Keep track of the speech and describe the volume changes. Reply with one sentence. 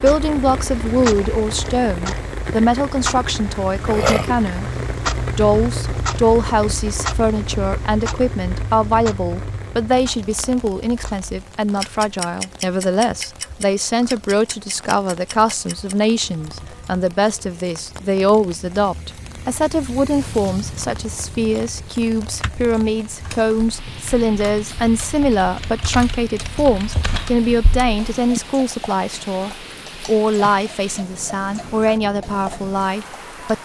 The loudness of the speech stays about the same.